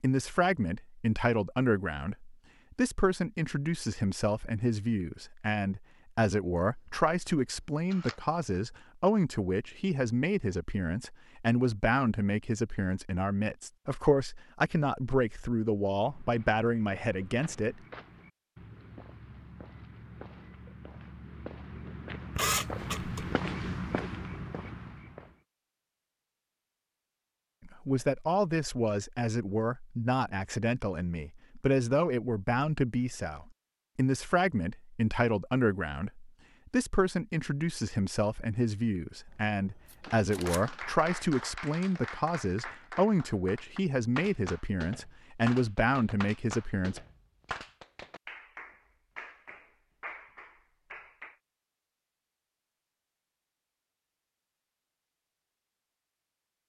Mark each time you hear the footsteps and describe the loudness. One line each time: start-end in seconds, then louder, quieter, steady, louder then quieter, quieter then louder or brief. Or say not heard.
15.9-25.4 louder.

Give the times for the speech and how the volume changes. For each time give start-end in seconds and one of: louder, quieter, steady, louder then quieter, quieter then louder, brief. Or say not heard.
0.0-17.8 steady
27.6-47.0 steady.